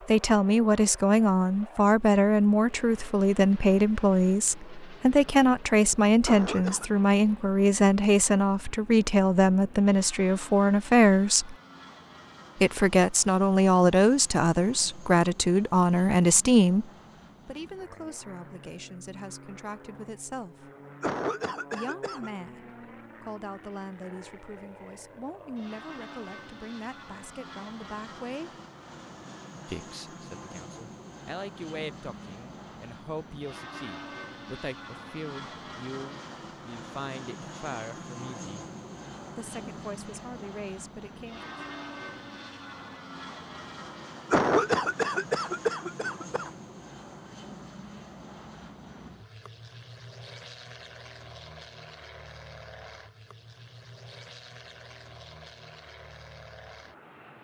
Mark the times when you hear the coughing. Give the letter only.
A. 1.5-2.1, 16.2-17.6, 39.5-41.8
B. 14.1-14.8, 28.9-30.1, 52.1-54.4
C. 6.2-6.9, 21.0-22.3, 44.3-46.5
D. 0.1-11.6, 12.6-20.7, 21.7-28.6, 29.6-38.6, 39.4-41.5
C.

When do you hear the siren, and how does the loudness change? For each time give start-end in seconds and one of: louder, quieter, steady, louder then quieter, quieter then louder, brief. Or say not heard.
not heard.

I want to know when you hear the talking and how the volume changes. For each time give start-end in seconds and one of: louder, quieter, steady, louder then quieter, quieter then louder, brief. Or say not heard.
0.1-11.6 steady
12.6-20.7 quieter
21.7-28.6 steady
29.6-38.6 steady
39.4-41.5 brief.